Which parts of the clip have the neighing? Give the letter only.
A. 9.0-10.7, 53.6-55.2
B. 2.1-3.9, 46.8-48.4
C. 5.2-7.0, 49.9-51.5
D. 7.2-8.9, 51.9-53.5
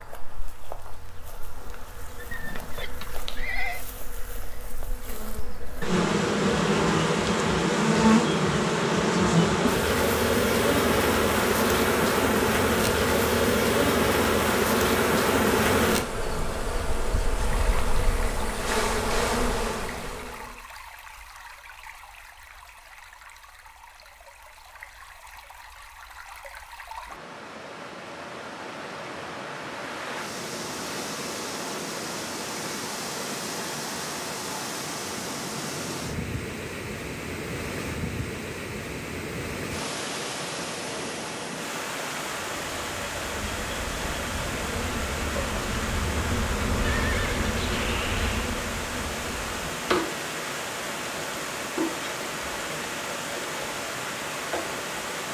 B.